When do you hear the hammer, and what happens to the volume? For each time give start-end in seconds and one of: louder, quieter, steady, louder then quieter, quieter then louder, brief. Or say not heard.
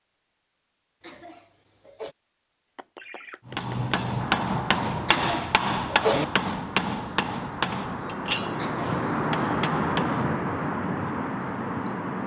3.5-10.5 quieter.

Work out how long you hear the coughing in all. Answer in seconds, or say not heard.
3 s.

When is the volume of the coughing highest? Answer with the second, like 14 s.
6 s.